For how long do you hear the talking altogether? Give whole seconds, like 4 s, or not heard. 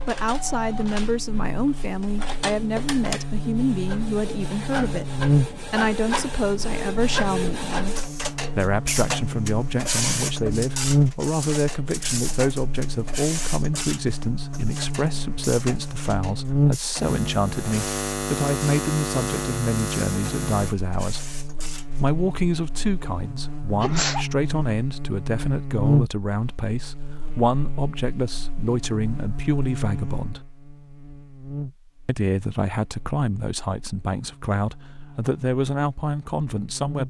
34 s.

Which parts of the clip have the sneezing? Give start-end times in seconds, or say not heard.
23.8-24.2.